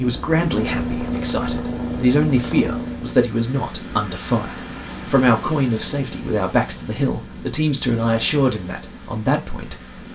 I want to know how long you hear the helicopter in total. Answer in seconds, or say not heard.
3 s.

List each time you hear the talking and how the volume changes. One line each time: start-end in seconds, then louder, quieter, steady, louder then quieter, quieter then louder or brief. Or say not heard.
0.0-10.1 steady.